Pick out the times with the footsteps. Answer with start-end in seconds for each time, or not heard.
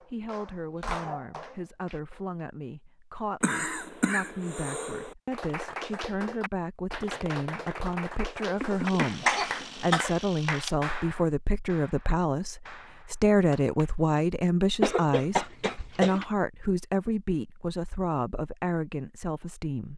not heard.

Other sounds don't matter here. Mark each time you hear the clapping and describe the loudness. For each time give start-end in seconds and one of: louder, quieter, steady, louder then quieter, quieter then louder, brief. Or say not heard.
0.0-2.4 brief
5.3-13.9 quieter.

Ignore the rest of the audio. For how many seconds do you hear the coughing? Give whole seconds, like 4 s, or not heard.
5 s.